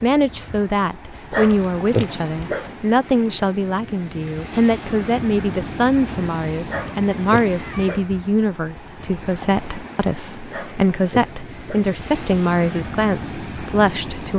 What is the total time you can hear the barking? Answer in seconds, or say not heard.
4 s.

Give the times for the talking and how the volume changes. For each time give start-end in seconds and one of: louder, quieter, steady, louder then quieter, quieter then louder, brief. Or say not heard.
0.0-14.3 steady.